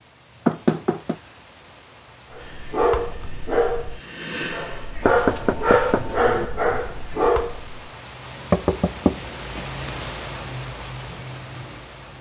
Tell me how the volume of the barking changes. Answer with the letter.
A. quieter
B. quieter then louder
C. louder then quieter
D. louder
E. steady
B.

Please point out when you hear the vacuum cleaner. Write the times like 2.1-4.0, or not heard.
2.4-5.1.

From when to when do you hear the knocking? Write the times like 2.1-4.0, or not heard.
0.5-1.1, 5.0-6.5, 8.5-9.7.